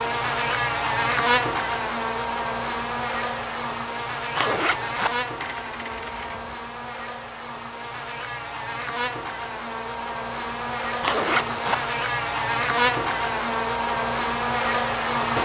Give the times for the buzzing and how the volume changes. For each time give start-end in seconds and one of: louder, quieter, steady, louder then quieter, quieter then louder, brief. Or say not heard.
0.0-15.4 quieter then louder.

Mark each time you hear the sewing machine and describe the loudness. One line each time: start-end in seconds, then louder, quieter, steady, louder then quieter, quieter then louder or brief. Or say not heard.
not heard.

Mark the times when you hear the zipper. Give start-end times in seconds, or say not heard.
4.3-5.2, 11.0-11.8.